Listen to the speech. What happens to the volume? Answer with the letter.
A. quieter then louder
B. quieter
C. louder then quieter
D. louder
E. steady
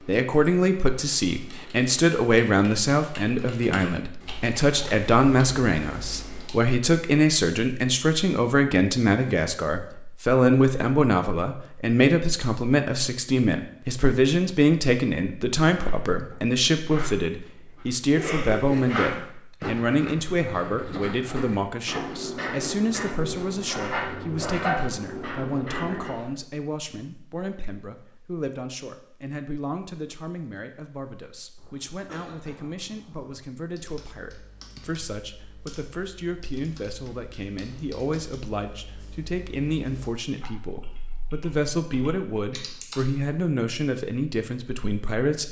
A.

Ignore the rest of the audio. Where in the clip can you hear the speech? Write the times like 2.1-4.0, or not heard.
0.1-45.4.